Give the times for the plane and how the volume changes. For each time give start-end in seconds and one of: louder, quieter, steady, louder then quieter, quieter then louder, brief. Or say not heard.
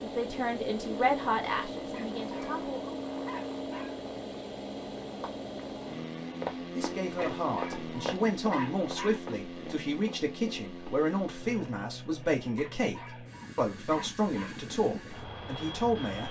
0.0-16.2 quieter.